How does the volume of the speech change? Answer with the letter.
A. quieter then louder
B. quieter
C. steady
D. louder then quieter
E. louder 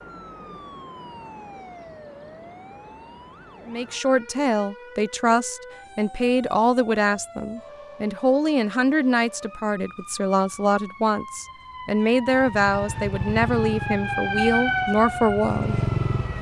C.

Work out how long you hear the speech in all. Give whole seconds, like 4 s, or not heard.
12 s.